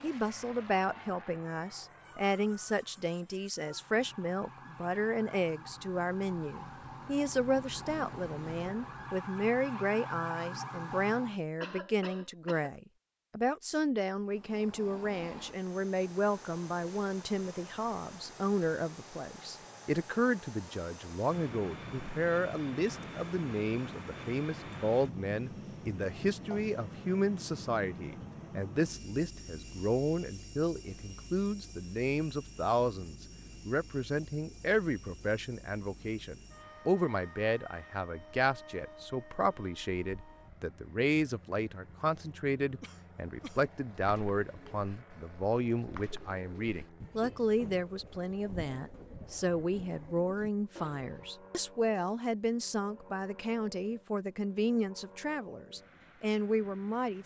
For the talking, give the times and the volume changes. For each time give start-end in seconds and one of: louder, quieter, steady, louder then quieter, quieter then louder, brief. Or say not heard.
0.0-57.2 steady.